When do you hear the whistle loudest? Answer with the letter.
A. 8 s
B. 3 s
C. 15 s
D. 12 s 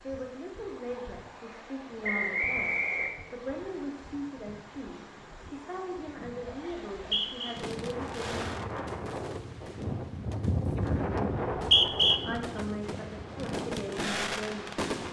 D.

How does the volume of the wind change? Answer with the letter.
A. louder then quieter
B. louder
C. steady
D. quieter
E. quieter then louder
B.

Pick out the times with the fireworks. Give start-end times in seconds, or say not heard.
7.5-15.0.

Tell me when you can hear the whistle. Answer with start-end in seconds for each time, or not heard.
2.0-3.1, 6.7-7.5, 11.3-12.2.